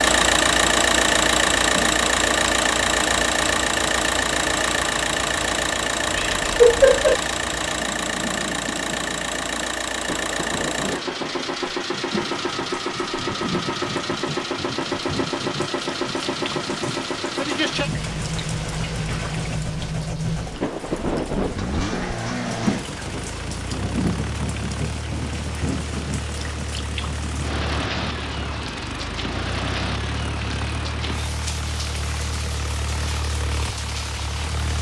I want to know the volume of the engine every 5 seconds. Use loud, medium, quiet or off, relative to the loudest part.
loud, medium, medium, medium, medium, quiet, quiet.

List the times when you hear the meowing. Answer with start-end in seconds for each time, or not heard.
6.2-7.2.